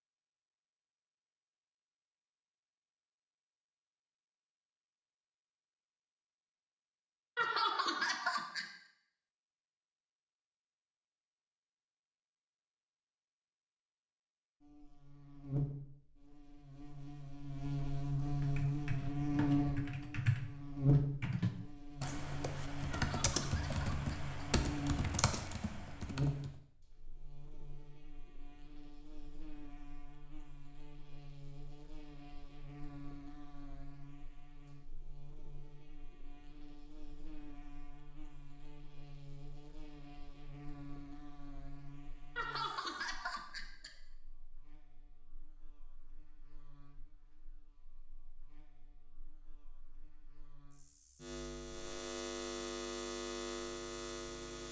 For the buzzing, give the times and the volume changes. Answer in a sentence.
The buzzing can be heard from 14.6 to 54.6 s, getting quieter then louder.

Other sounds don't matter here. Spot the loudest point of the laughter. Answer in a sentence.
The loudest moment of the laughter is at 8 seconds.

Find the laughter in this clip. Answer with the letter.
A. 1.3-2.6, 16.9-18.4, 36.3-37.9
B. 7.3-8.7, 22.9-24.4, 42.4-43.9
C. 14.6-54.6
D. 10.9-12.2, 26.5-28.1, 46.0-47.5
B.